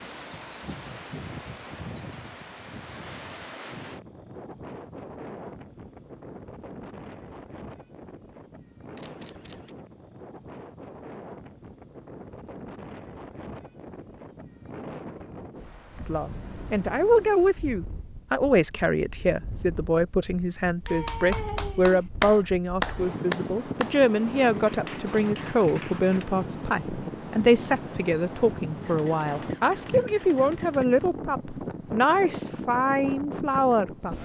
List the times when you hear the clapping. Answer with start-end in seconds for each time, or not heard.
20.9-26.2.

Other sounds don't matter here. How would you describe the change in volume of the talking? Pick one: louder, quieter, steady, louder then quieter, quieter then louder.
steady.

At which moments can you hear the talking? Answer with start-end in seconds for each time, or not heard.
16.1-34.1.